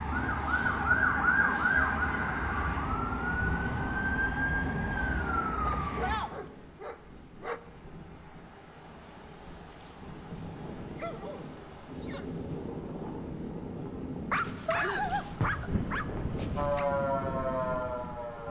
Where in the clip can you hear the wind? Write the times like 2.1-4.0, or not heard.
2.7-18.4.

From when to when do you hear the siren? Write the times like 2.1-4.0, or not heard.
0.0-6.2, 16.6-18.4.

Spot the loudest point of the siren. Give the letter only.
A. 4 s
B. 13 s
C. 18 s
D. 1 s
D.